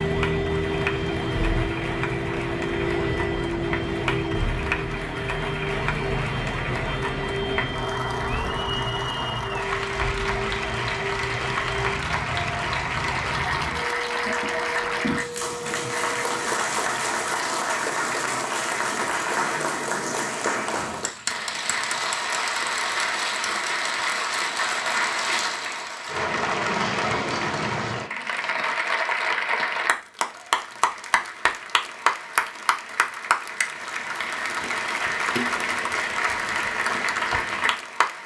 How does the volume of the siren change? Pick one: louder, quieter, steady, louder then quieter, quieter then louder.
quieter.